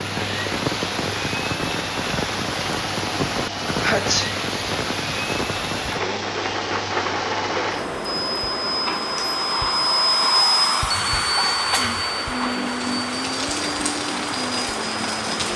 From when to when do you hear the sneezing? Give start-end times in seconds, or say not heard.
3.8-4.3, 11.3-12.1.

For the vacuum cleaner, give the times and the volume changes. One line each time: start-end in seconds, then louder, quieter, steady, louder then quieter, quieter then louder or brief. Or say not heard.
0.0-15.5 louder then quieter.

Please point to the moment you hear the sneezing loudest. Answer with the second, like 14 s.
4 s.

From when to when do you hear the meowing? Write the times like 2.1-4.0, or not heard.
not heard.